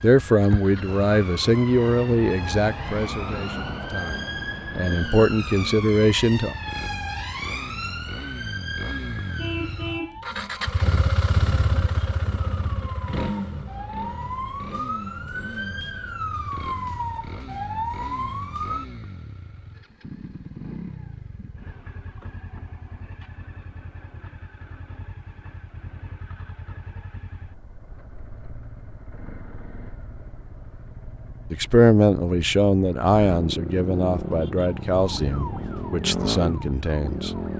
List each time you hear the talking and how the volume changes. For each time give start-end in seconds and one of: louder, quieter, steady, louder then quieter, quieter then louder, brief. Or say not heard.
0.0-6.5 quieter then louder
31.5-37.3 quieter.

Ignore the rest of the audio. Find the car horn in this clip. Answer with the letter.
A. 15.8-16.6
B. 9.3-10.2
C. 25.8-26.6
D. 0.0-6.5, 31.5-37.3
B.